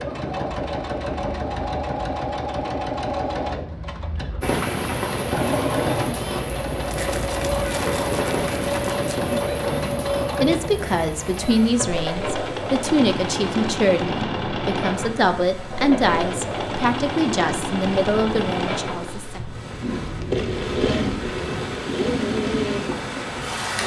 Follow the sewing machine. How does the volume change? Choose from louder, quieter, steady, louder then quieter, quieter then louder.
steady.